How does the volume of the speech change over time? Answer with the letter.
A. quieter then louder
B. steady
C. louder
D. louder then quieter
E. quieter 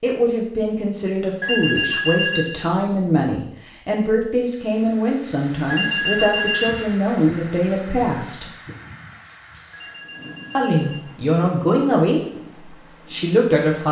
B.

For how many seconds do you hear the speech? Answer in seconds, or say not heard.
12 s.